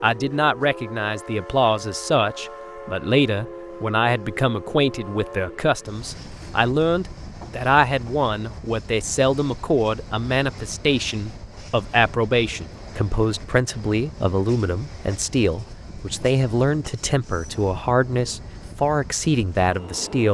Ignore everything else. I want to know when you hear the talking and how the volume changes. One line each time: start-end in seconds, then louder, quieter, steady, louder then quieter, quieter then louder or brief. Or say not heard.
0.0-20.2 steady.